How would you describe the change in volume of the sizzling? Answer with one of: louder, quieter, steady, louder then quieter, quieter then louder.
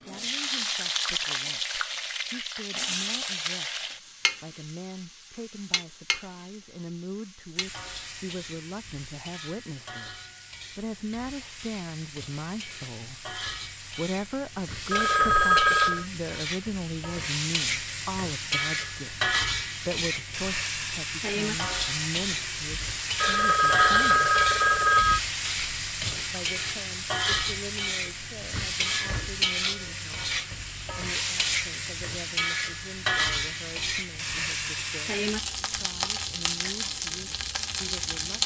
quieter then louder.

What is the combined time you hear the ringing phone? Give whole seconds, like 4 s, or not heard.
3 s.